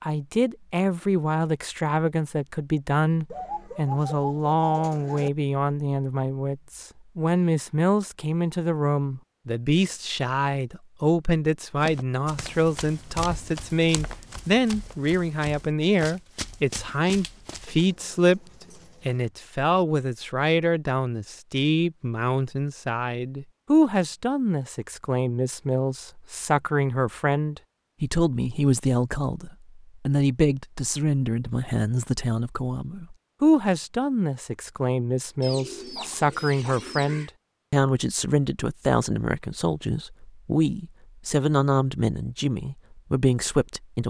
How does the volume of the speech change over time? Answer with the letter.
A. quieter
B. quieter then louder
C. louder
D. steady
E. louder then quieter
D.